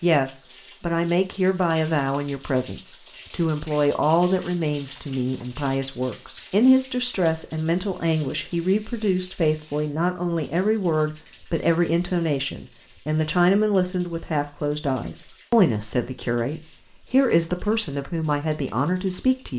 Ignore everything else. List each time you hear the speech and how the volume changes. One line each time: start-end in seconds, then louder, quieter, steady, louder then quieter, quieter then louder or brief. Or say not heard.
0.0-19.5 steady.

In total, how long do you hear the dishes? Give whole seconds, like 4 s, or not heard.
not heard.